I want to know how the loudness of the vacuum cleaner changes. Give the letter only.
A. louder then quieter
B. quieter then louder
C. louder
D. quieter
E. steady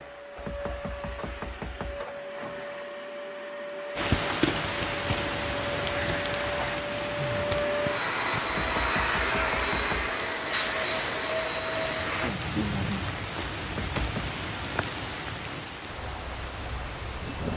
C.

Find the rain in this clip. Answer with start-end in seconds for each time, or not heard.
4.0-17.5.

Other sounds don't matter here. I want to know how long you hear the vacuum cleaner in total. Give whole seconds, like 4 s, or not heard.
12 s.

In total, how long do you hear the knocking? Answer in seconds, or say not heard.
4 s.